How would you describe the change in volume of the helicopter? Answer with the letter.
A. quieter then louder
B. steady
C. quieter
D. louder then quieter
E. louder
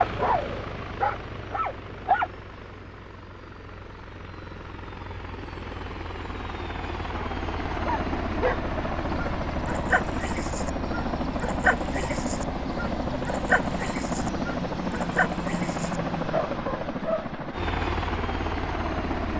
E.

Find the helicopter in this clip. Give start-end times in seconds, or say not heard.
0.0-19.3.